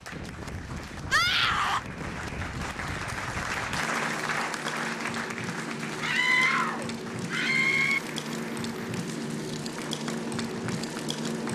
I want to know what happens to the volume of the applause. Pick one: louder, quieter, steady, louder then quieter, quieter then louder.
louder then quieter.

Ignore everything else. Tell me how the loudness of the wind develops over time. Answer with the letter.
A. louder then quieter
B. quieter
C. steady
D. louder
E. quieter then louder
D.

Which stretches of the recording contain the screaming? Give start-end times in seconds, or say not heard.
1.1-1.8, 6.0-8.0.